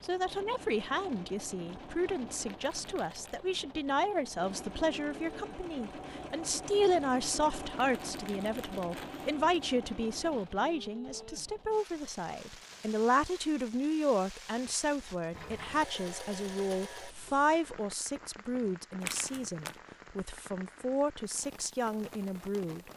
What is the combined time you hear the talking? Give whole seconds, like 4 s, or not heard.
23 s.